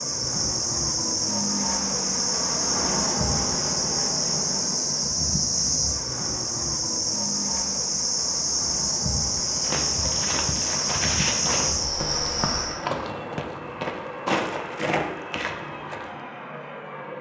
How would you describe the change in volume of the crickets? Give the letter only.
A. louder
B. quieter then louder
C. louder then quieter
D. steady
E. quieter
D.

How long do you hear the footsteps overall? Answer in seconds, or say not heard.
7 s.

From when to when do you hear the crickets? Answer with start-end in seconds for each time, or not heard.
0.0-12.8.